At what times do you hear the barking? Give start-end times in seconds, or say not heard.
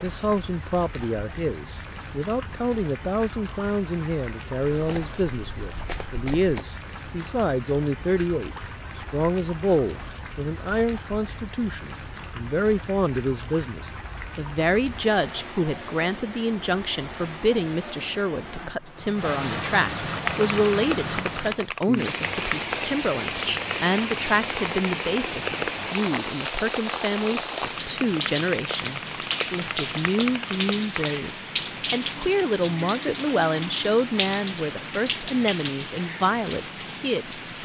not heard.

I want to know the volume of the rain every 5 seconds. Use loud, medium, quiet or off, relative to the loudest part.
medium, medium, medium, medium, loud, loud, loud, loud.